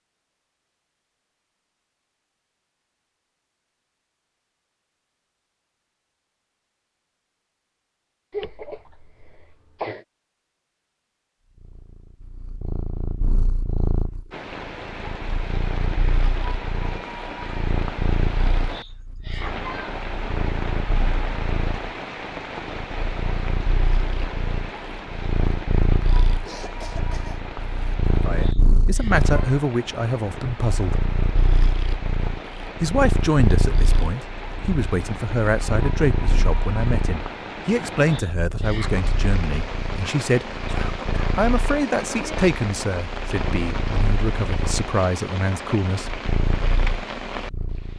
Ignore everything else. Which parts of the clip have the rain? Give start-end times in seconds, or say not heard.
14.3-47.9.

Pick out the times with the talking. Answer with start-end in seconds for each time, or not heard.
28.2-31.1, 32.8-40.5, 41.4-46.1.